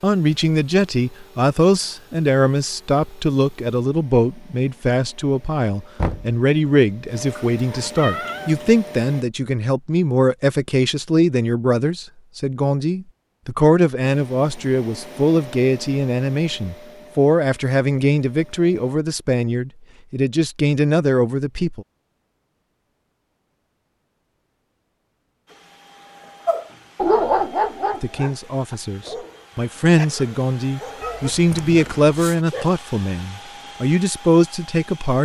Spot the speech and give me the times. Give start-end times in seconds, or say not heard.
0.0-21.9, 28.0-35.1.